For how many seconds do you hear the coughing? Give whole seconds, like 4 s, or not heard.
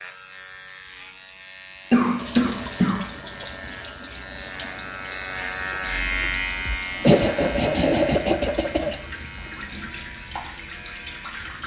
3 s.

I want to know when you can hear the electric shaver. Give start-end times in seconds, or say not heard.
0.0-11.6.